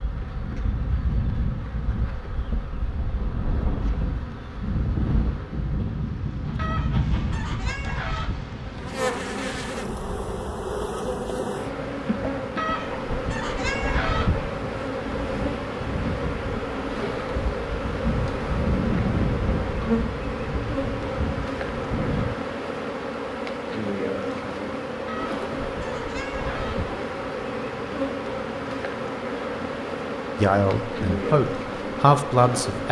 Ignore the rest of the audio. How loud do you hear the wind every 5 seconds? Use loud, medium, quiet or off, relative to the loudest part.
loud, loud, medium, loud, loud, off, off.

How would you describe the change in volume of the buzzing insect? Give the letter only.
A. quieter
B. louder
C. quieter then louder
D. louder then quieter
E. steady
B.